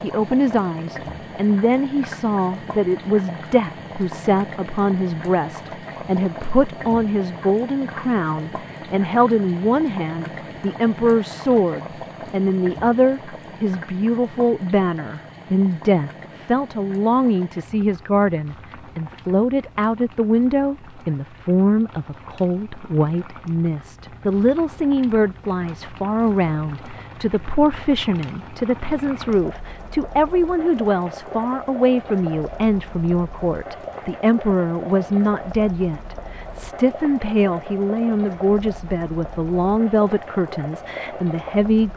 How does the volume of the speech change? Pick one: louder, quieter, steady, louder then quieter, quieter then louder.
steady.